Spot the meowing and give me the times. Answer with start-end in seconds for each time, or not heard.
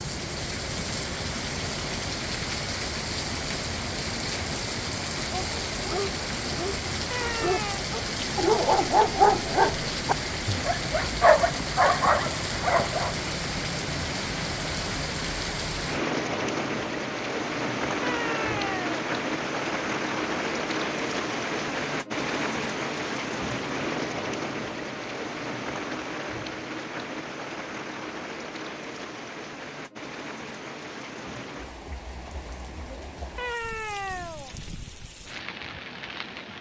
7.1-7.8, 18.0-18.9, 33.4-34.5.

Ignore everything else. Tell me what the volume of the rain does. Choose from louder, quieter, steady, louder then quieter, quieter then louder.
quieter.